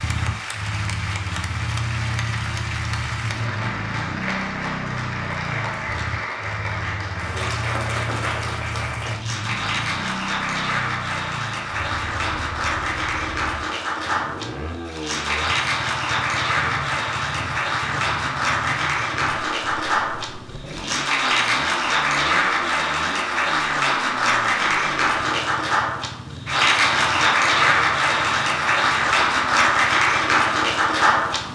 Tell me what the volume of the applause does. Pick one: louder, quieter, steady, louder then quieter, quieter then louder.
louder.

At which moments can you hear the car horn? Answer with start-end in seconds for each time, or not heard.
not heard.